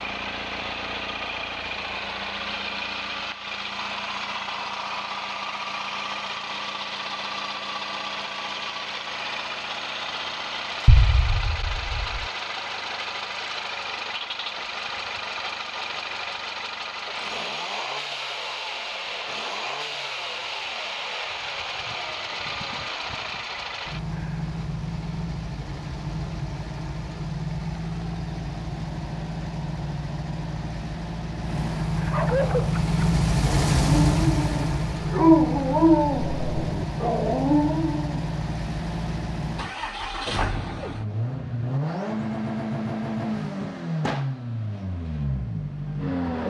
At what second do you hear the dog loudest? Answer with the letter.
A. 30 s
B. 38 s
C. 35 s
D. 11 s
C.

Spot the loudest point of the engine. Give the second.
34 s.